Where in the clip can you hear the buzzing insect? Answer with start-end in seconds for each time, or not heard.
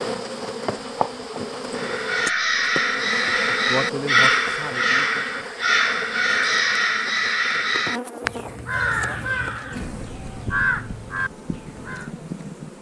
0.0-12.7.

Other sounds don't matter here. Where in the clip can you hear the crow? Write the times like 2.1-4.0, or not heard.
1.8-12.1.